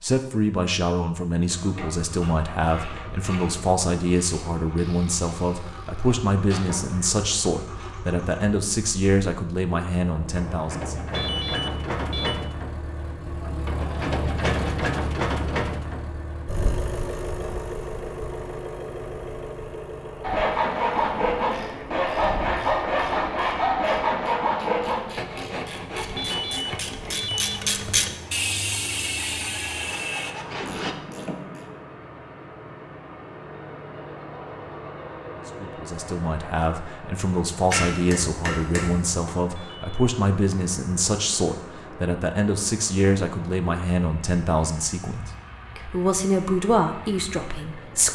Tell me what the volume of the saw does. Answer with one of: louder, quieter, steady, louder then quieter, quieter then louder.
quieter.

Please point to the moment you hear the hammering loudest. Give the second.
38 s.